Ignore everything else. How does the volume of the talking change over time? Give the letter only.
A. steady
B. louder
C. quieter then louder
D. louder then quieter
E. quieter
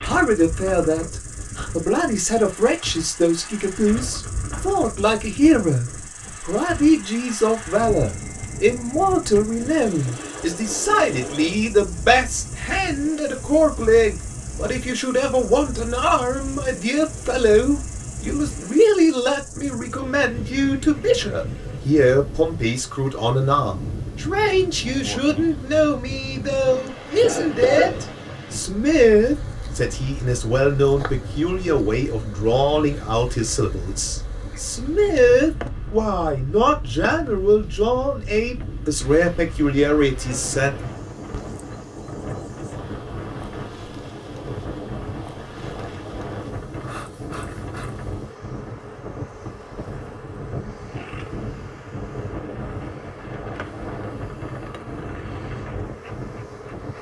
A.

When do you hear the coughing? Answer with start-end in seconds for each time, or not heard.
26.6-28.0.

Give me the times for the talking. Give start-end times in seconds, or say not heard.
0.0-40.7.